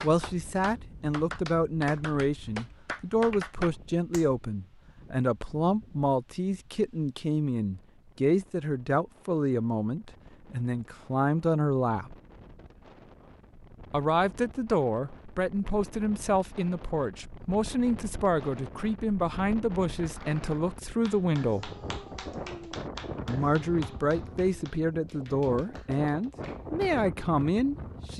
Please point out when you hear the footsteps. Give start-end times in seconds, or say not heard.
not heard.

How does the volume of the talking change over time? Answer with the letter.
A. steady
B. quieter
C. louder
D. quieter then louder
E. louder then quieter
A.